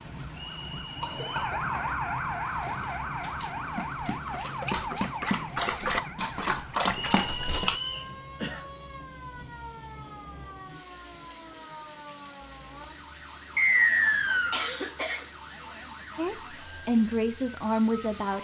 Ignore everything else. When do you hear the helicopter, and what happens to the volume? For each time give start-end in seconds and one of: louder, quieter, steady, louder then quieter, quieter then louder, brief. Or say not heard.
not heard.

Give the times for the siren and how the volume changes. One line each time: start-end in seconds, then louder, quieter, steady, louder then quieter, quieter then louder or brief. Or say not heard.
0.0-18.3 quieter.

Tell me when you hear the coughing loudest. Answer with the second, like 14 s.
15 s.